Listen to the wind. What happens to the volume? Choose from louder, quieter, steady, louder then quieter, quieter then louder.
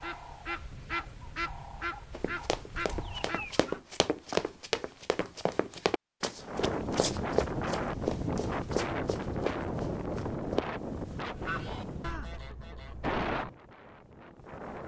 quieter then louder.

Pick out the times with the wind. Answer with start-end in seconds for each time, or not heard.
6.4-14.8.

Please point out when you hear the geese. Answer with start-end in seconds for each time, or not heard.
0.0-3.8, 11.2-13.2.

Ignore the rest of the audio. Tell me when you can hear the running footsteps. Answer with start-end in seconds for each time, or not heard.
2.1-10.7.